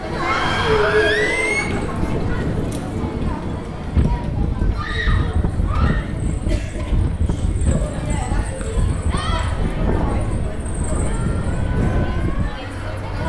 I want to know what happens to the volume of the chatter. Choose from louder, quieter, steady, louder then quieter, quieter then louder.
quieter.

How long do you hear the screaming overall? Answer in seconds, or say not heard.
3 s.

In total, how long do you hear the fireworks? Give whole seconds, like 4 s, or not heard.
not heard.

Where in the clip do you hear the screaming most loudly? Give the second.
1 s.